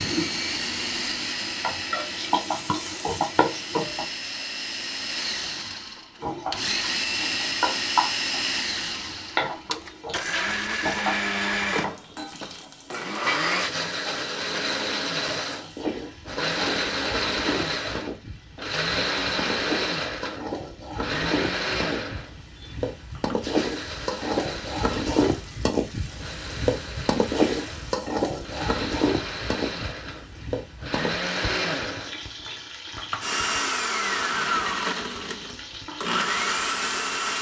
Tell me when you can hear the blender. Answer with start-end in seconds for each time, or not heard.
0.0-37.3.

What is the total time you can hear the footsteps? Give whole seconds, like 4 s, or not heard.
not heard.